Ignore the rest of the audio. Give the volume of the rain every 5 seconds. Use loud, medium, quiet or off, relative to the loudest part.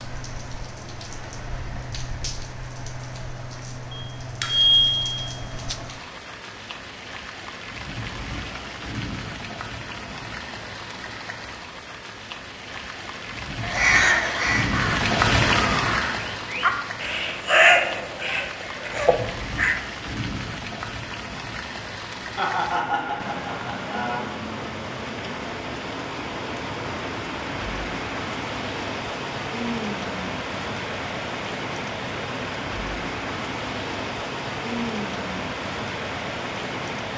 medium, medium, medium, loud, medium, loud, loud, loud.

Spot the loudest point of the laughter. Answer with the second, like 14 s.
23 s.